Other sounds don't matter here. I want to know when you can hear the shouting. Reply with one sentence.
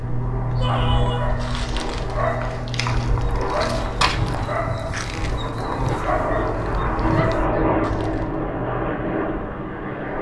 The shouting can be heard from 0.6 to 1.4 s and from 7.3 to 7.8 s.